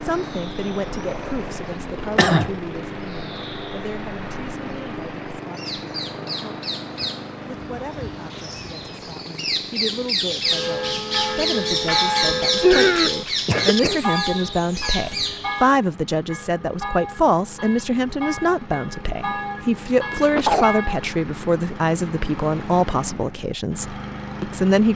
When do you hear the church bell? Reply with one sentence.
You can hear the church bell from 10.4 to 21.1 s.